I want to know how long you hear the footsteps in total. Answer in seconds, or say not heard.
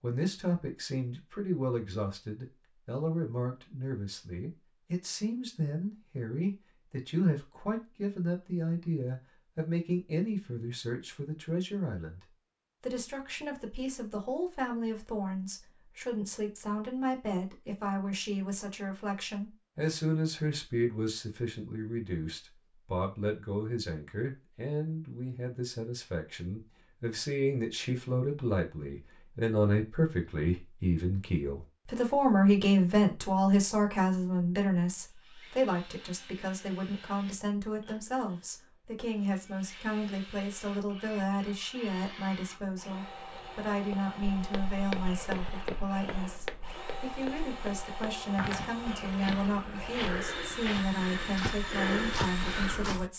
9 s.